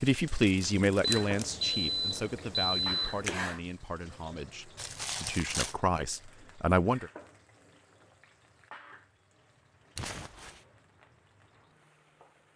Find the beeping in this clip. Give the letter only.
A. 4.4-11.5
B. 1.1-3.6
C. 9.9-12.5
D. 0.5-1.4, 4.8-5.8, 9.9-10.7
B.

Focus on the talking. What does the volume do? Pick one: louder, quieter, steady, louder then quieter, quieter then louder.
quieter then louder.